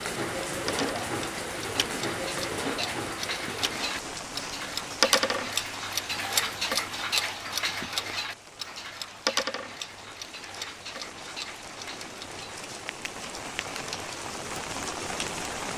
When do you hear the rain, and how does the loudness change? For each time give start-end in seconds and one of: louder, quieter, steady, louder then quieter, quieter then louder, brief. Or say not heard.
0.0-15.7 quieter then louder.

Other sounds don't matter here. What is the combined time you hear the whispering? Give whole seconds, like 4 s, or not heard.
not heard.